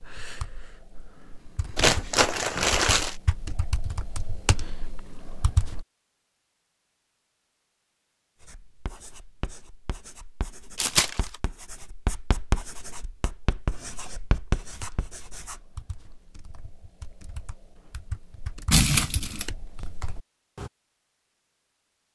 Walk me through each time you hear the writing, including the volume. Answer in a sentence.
You can hear the writing from 8.4 to 15.7 s, getting louder.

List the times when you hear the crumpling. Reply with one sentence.
The crumpling can be heard from 1.8 to 3.1 s, from 10.8 to 11.3 s and from 18.7 to 19.4 s.